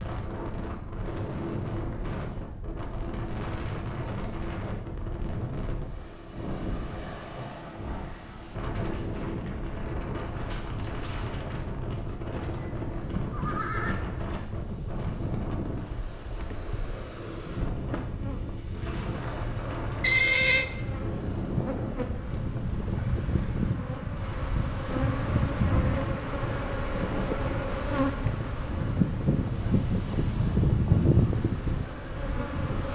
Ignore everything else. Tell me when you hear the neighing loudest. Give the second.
20 s.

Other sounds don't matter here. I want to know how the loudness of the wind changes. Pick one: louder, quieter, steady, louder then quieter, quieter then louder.
steady.